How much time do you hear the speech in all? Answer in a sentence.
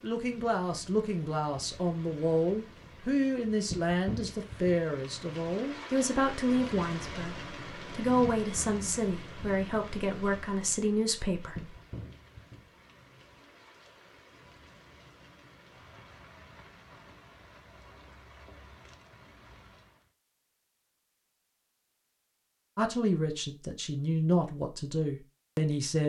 The speech can be heard for 15 seconds in total.